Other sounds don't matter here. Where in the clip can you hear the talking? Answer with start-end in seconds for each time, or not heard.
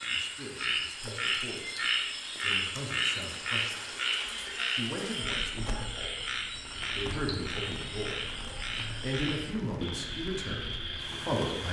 0.1-4.0, 4.8-6.3, 7.0-8.2, 9.0-11.6.